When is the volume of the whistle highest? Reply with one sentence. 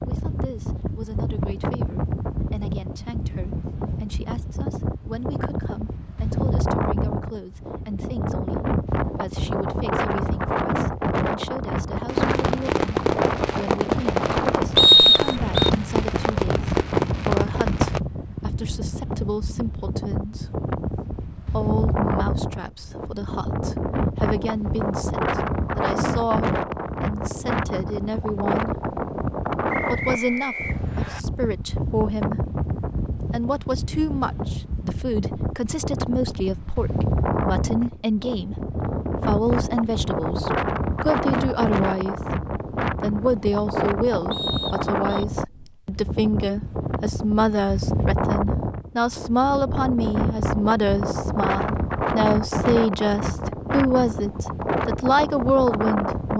The loudest moment of the whistle is at 15 seconds.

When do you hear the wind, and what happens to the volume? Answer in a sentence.
The wind can be heard from 0.0 to 56.3 s, at a steady volume.